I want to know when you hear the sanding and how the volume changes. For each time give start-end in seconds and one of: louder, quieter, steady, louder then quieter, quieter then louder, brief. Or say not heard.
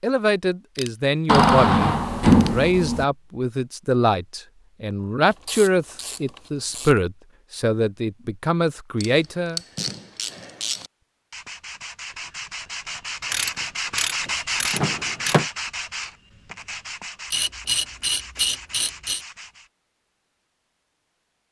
11.3-19.7 louder then quieter.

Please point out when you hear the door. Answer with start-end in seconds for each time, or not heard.
1.2-3.0, 14.7-15.4.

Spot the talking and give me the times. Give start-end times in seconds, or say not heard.
0.0-9.6.